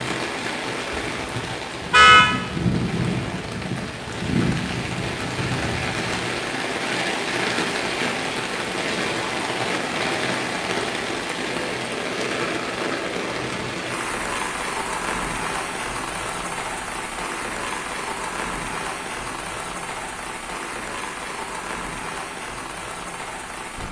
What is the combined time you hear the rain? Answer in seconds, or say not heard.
24 s.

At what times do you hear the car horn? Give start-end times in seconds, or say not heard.
0.9-2.3.